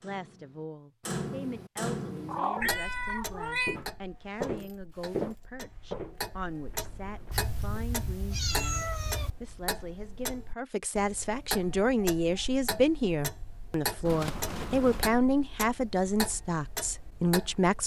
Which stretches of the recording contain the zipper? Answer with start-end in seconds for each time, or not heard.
not heard.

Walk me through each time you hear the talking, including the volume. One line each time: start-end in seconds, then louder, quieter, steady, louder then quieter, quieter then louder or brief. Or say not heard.
0.0-17.8 louder.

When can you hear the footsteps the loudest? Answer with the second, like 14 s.
5 s.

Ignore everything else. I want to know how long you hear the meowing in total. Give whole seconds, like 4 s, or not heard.
5 s.